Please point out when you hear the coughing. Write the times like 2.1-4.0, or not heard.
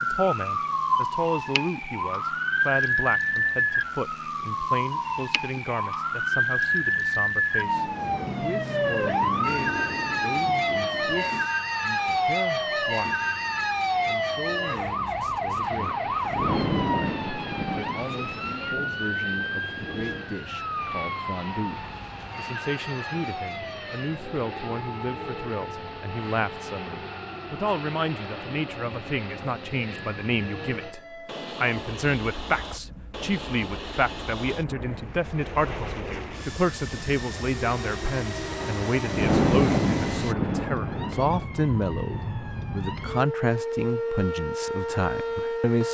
not heard.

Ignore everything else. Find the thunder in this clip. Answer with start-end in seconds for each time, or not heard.
7.8-11.4, 15.8-20.2, 38.5-41.5.